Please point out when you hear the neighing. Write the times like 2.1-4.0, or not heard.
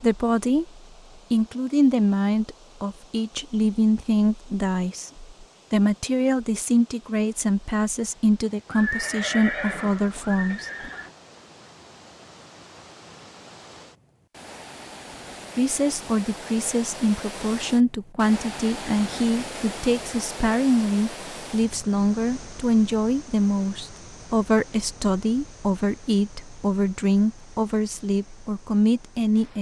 8.7-11.1.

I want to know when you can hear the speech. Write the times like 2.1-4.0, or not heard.
0.0-10.9, 15.6-29.5.